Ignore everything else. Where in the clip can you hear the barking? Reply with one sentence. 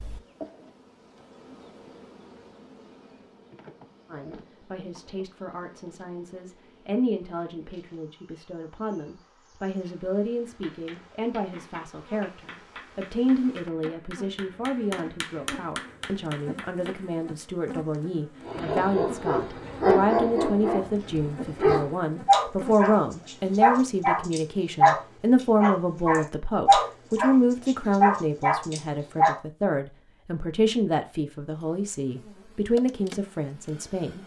The barking can be heard from 18.4 to 29.4 s.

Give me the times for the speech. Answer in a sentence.
The speech can be heard from 4.1 to 34.2 s.